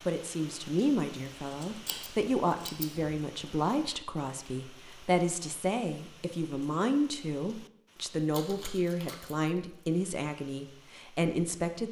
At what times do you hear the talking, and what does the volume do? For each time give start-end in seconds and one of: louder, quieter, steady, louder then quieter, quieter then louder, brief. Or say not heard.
0.1-11.8 steady.